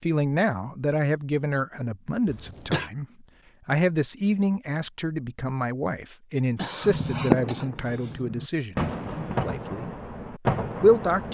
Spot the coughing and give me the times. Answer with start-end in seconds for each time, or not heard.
2.2-2.9, 6.5-8.2.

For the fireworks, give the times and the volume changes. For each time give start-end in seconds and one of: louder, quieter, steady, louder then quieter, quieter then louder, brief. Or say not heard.
6.8-11.2 quieter then louder.